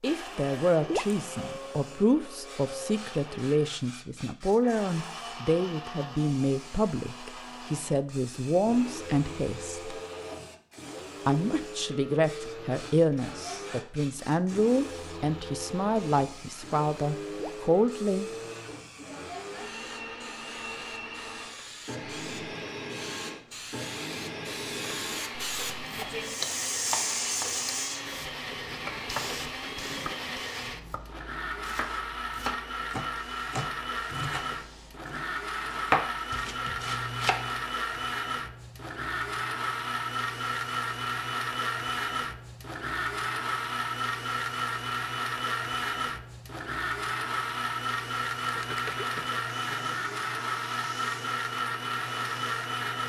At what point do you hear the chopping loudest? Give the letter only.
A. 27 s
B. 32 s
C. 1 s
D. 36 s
D.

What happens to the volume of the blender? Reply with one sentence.
The volume of the blender goes up.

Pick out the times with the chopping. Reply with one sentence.
The chopping can be heard from 25.8 to 37.6 s.